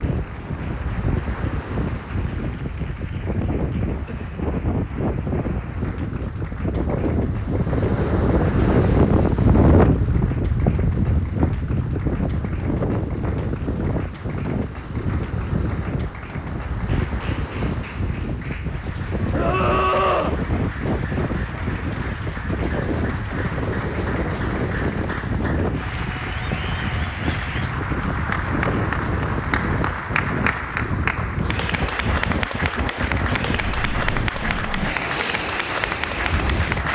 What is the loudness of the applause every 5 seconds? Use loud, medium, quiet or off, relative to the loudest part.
quiet, quiet, quiet, quiet, medium, loud, loud, loud.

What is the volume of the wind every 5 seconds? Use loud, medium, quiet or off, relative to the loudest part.
medium, loud, loud, medium, medium, medium, medium, medium.